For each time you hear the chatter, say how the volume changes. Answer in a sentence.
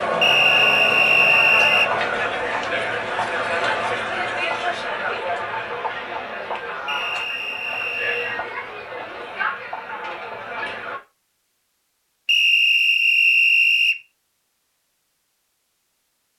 You can hear the chatter from 0.0 to 11.0 s, getting quieter.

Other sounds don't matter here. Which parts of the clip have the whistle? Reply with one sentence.
You can hear the whistle from 0.2 to 1.9 s, from 6.8 to 8.4 s and from 12.2 to 14.0 s.